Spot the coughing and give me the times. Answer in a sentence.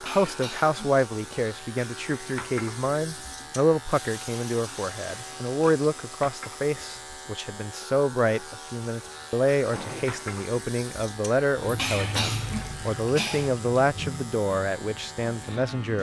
You can hear the coughing from 0.1 to 1.1 s and from 11.8 to 13.5 s.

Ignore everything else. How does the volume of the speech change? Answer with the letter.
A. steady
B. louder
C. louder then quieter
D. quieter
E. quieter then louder
A.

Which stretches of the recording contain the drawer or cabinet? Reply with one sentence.
You can hear the drawer or cabinet from 9.7 to 10.3 s.